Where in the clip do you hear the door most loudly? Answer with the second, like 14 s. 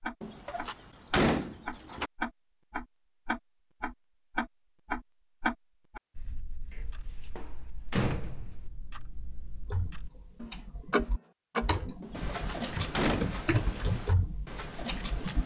1 s.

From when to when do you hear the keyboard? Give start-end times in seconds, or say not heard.
9.7-15.4.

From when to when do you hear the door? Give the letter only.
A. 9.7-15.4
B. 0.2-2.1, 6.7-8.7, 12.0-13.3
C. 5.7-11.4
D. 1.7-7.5
B.